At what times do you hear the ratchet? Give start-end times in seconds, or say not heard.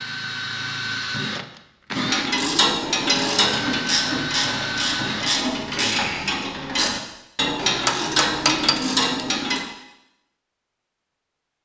1.9-9.6.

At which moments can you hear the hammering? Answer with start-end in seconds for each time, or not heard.
7.5-9.0.